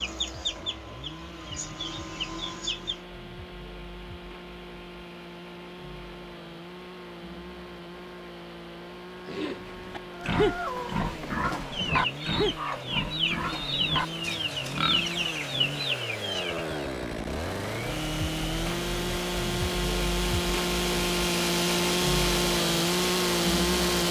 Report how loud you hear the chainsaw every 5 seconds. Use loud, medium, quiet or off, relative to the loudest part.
quiet, quiet, quiet, medium, loud.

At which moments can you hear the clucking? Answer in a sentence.
The clucking can be heard from 0.0 to 3.0 s and from 10.1 to 16.8 s.